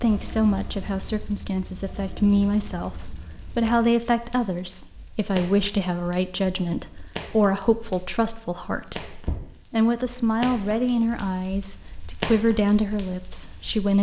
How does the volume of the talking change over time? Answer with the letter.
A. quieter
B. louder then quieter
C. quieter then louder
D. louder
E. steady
E.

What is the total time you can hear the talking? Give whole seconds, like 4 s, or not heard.
14 s.